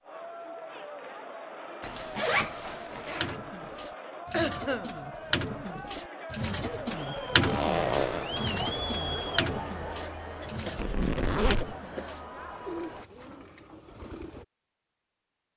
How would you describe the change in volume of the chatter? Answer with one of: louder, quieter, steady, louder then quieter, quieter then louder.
louder then quieter.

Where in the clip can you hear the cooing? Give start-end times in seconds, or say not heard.
3.1-14.4.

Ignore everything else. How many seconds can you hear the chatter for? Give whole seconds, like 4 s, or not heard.
13 s.